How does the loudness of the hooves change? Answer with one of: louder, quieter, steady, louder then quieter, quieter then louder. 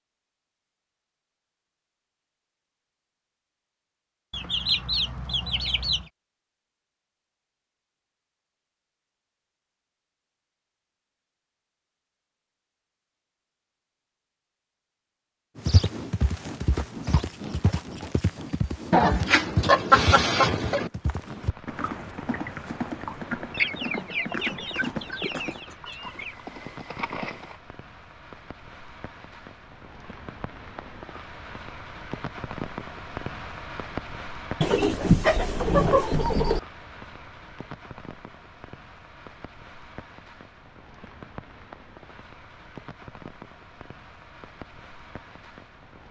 quieter.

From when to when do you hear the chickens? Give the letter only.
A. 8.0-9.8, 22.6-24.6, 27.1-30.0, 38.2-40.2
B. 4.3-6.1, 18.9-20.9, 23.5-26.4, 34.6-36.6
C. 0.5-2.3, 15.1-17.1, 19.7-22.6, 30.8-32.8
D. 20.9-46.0
B.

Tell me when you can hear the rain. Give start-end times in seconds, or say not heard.
20.9-46.0.